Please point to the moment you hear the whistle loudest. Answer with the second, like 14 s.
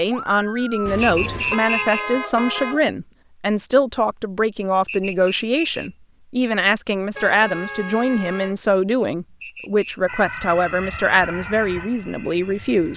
2 s.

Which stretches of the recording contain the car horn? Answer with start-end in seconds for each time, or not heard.
0.8-2.9, 7.1-8.6.